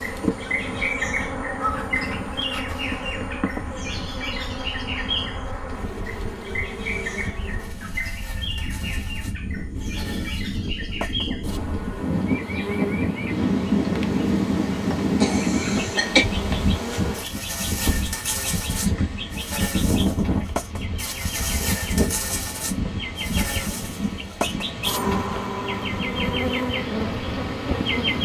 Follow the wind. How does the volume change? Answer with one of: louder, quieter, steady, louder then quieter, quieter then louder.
louder then quieter.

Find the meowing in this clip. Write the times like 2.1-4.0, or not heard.
1.6-2.8.